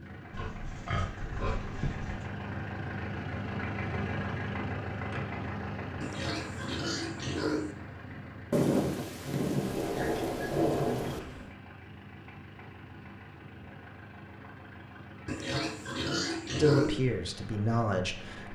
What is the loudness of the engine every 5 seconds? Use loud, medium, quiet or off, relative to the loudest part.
loud, loud, medium, medium.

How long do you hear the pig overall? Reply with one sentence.
You can hear the pig for 7 seconds altogether.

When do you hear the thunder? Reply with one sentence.
The thunder can be heard from 8.5 to 11.2 s.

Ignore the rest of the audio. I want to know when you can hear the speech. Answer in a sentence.
You can hear the speech from 16.6 to 18.5 s.